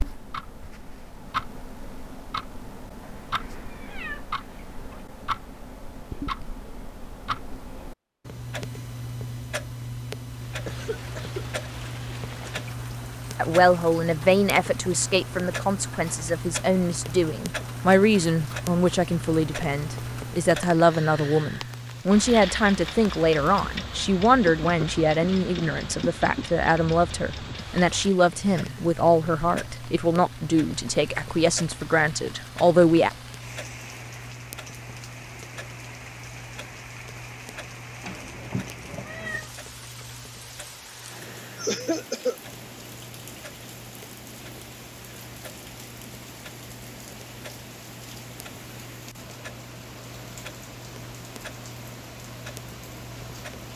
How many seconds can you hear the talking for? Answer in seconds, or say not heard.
20 s.